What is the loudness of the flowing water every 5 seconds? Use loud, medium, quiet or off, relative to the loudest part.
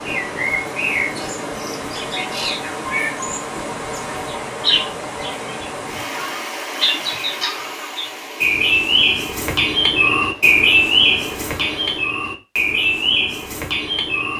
loud, loud, medium.